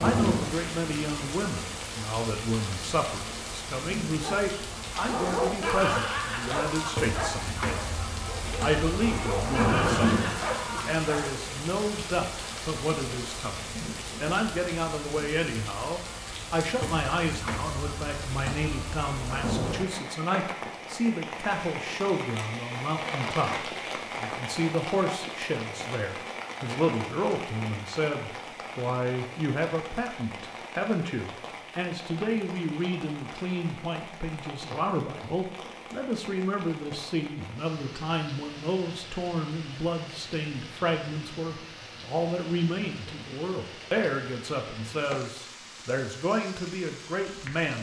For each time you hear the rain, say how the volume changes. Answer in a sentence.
The rain can be heard from 0.0 to 47.7 s, getting quieter.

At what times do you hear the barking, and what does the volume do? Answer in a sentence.
The barking can be heard from 4.2 to 11.3 s, getting quieter then louder.